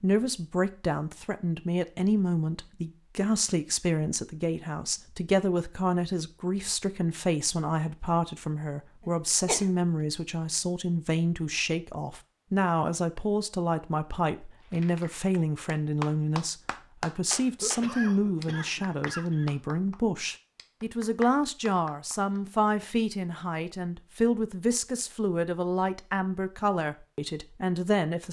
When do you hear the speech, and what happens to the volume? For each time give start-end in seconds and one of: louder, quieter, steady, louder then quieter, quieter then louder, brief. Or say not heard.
0.0-28.2 steady.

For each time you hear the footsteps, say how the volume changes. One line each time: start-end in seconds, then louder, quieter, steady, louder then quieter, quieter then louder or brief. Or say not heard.
not heard.